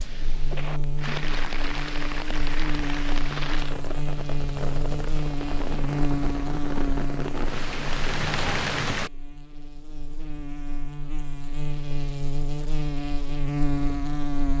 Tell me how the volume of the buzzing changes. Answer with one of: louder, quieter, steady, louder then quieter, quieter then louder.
quieter then louder.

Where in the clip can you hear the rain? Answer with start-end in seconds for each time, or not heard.
0.0-9.1.